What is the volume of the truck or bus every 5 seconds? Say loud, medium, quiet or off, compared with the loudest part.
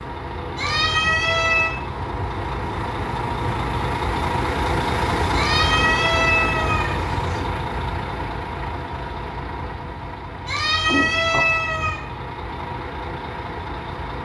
loud, loud, medium.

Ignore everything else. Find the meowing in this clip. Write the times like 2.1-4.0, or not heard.
0.6-1.8, 5.3-7.5, 10.4-12.0.